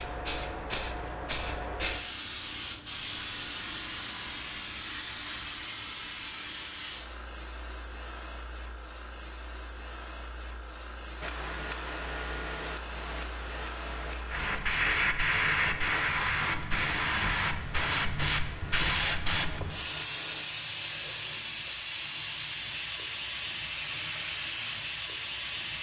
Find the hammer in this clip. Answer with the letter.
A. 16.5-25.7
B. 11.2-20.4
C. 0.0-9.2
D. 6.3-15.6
B.